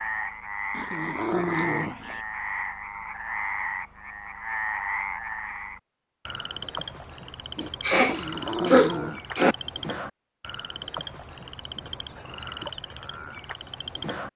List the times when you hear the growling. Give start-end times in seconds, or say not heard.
0.7-2.2, 8.0-9.2.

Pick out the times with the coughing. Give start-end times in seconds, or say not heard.
7.5-9.6.